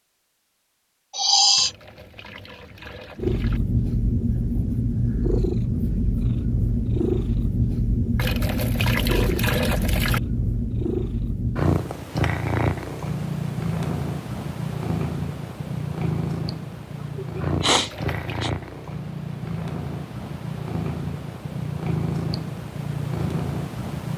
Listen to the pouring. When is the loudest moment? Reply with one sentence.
The volume of the pouring peaks at 10 seconds.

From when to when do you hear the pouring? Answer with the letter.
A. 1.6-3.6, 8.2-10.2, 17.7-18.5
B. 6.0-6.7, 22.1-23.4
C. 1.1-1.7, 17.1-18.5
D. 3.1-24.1
A.